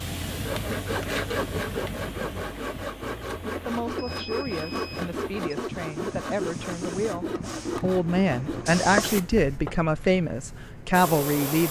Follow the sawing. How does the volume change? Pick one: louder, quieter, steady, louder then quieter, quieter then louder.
steady.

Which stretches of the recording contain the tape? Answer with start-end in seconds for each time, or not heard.
not heard.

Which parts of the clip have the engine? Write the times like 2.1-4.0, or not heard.
0.0-2.4.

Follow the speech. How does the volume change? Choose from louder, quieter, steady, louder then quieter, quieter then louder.
louder.